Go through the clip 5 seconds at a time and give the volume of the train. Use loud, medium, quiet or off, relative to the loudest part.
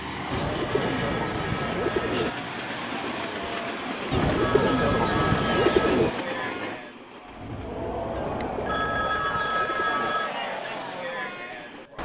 loud, loud, quiet.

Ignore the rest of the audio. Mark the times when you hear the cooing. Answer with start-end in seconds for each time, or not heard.
0.3-2.3, 4.1-6.1, 8.1-10.2.